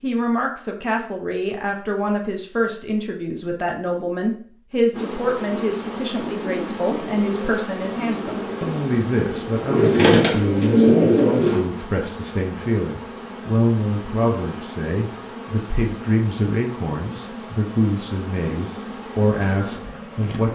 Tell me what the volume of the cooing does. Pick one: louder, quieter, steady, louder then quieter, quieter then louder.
louder.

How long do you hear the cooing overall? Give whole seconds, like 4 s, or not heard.
7 s.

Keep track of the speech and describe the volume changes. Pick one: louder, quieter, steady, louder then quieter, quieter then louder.
steady.